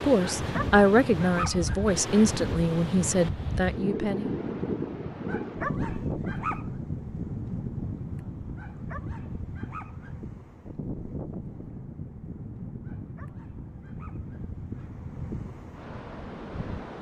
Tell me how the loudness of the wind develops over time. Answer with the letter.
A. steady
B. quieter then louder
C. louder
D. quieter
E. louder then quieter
D.